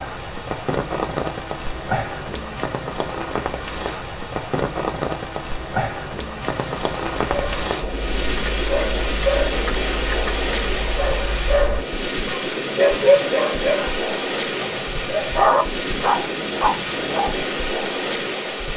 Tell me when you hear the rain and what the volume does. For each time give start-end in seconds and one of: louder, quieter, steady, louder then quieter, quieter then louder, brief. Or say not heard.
0.0-18.7 steady.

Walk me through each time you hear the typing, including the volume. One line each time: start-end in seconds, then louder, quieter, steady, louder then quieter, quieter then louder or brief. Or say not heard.
not heard.